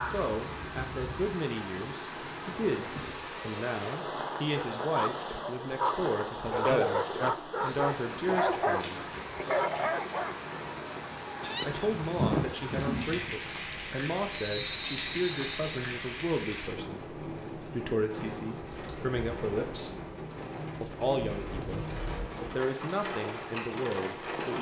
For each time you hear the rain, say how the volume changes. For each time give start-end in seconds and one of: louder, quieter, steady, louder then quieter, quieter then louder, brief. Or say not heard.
0.0-24.5 steady.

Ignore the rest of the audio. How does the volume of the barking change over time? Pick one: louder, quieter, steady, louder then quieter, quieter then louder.
steady.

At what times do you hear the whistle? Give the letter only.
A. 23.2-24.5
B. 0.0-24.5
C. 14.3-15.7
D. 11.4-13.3
C.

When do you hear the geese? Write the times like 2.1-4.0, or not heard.
11.4-13.3.